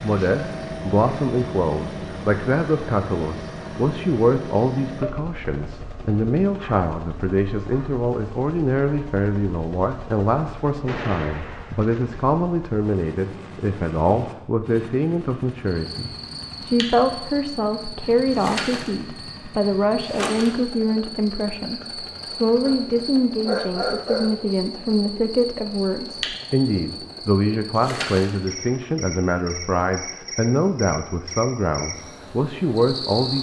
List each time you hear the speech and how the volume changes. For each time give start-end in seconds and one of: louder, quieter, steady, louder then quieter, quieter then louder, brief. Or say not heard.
0.0-33.3 steady.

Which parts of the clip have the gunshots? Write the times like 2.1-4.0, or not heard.
10.8-12.2.